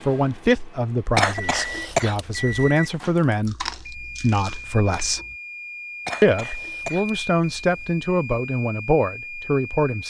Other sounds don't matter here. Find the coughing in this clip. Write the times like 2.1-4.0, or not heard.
1.1-2.6, 6.0-7.9.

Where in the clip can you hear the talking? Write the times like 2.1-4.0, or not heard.
0.1-5.2, 6.2-10.0.